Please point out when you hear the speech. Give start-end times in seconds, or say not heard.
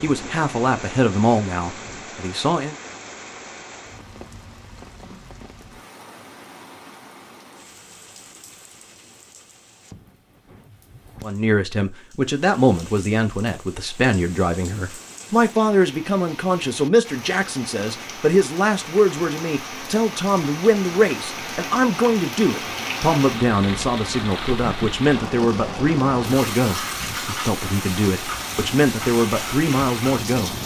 0.0-2.8, 11.2-30.6.